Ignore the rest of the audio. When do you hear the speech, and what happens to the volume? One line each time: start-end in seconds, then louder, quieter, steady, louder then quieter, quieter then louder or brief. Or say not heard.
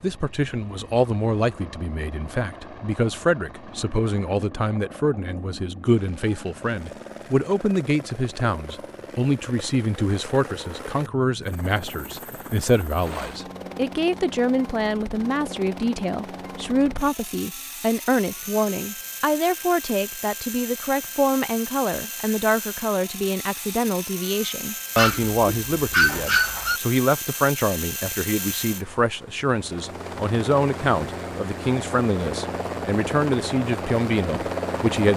0.0-35.1 steady.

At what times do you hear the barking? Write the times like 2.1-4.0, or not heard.
24.9-26.8.